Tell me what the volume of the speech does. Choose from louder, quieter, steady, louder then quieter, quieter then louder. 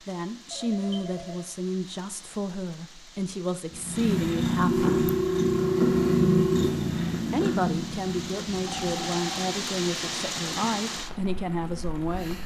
steady.